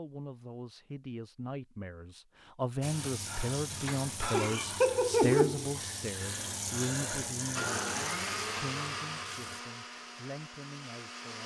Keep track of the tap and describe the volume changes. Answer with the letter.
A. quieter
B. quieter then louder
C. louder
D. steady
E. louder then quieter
E.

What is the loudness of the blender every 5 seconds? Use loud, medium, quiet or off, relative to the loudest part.
off, loud, medium.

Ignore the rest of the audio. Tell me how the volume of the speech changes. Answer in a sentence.
The volume of the speech goes up, then down.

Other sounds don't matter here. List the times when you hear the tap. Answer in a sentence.
You can hear the tap from 2.8 to 9.6 s.